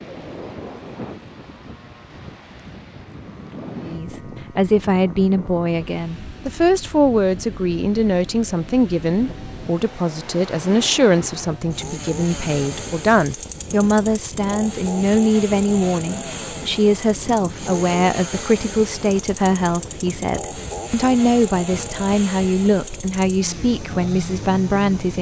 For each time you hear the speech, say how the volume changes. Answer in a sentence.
You can hear the speech from 3.8 to 25.1 s, at a steady volume.